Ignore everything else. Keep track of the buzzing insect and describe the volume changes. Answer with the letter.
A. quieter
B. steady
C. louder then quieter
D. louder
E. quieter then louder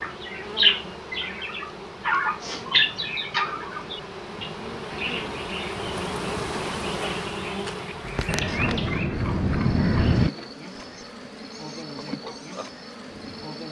C.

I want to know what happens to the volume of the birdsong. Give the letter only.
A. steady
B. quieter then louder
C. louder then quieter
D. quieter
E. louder
B.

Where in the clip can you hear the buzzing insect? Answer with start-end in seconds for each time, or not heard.
0.0-13.6.